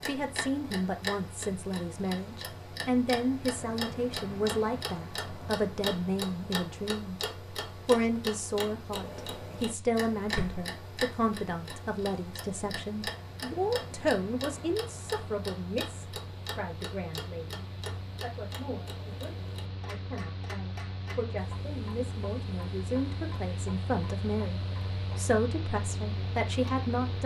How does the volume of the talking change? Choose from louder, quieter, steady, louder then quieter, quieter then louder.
quieter then louder.